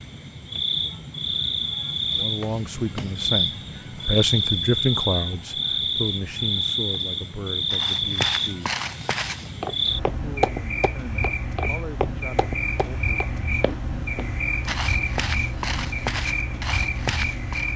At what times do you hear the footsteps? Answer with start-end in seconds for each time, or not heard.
7.7-17.7.